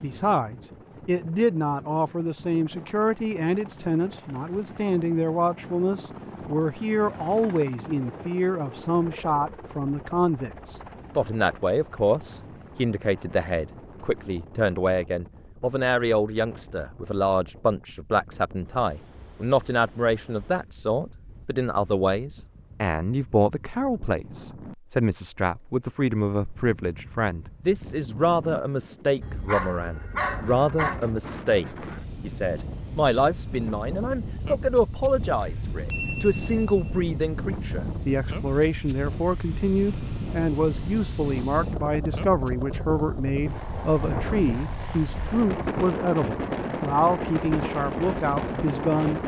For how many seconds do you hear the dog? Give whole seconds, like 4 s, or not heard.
2 s.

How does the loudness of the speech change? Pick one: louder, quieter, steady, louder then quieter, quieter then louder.
steady.